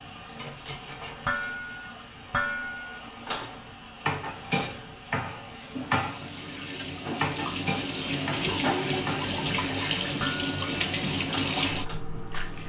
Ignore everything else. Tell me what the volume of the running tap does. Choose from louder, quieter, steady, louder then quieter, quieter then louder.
louder.